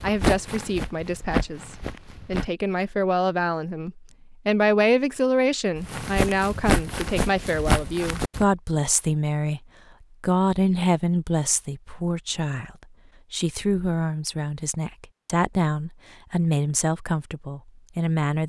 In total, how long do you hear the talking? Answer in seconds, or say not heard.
18 s.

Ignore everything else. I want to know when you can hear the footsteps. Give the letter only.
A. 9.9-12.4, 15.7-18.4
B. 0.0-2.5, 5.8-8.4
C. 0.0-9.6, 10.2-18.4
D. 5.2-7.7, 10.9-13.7
B.